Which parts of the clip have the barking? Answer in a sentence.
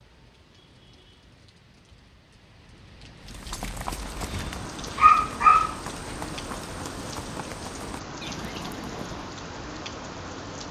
You can hear the barking from 4.2 to 5.8 s.